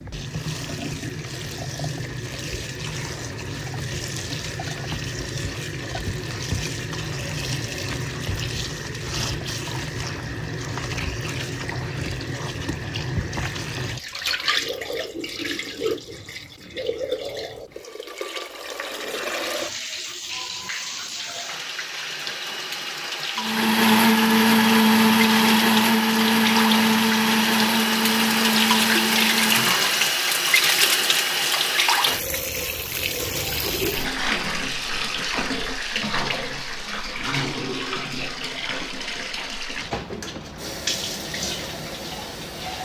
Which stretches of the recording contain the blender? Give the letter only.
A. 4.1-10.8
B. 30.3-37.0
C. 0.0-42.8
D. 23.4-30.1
D.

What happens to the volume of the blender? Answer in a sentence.
The volume of the blender goes down.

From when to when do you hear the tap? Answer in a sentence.
You can hear the tap from 0.0 to 42.8 s.